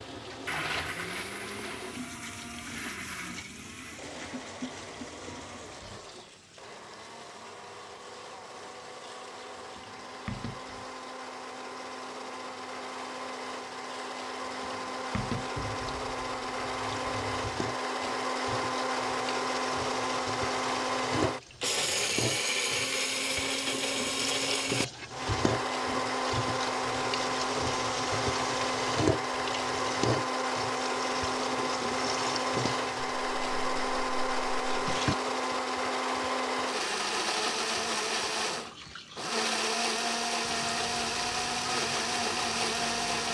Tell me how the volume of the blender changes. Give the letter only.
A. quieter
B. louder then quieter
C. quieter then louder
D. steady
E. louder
E.